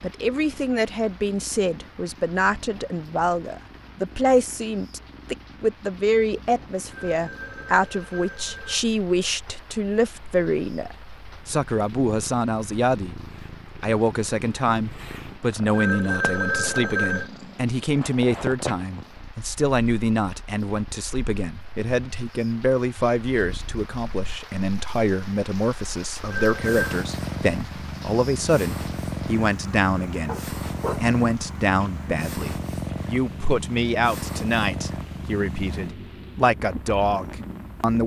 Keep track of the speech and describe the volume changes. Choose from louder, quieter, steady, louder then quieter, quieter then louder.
steady.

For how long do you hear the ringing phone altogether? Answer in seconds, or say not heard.
4 s.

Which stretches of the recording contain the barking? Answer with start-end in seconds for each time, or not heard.
30.2-31.0.